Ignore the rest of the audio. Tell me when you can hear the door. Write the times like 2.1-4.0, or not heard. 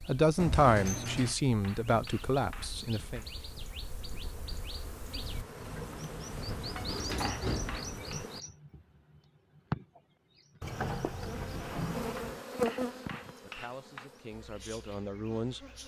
0.3-1.4, 5.7-8.2, 10.6-12.4.